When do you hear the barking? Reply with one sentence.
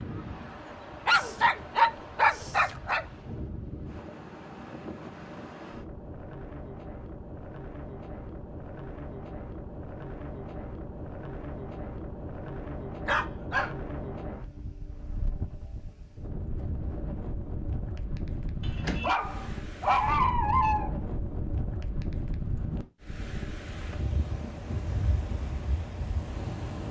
You can hear the barking from 1.1 to 3.0 s, from 13.1 to 13.7 s and from 18.6 to 20.9 s.